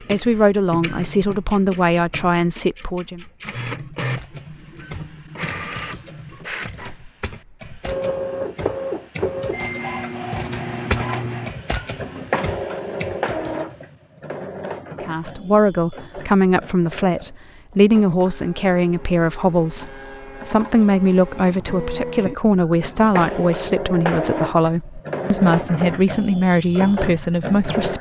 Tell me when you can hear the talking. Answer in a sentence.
The talking can be heard from 0.1 to 3.2 s and from 15.0 to 27.9 s.